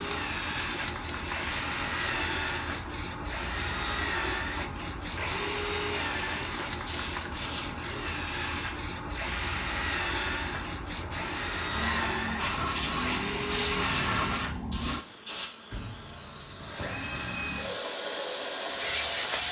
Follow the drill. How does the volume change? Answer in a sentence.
The loudness of the drill stays about the same.